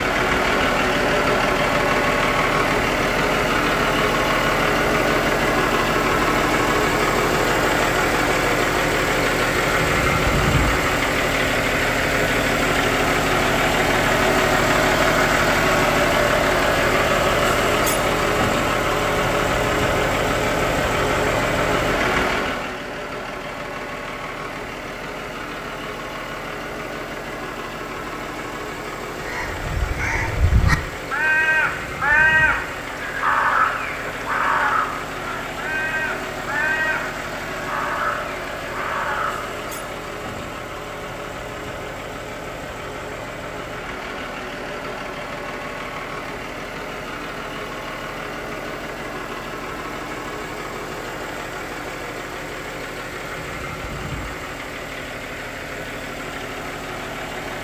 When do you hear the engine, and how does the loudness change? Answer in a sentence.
You can hear the engine from 0.0 to 57.6 s, getting quieter.